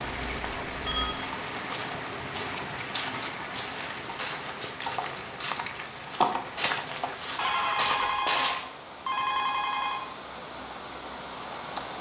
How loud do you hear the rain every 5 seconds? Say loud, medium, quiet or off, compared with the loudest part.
loud, medium, loud.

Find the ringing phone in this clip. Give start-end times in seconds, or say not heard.
0.0-1.2, 7.3-10.1.